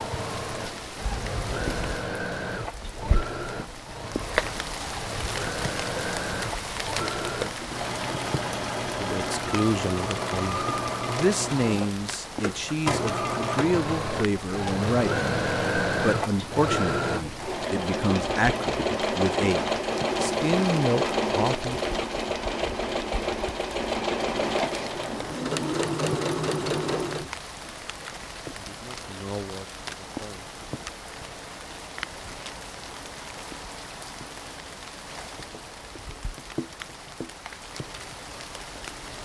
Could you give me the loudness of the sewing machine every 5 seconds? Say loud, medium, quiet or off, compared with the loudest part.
medium, medium, loud, loud, loud, loud, off, off.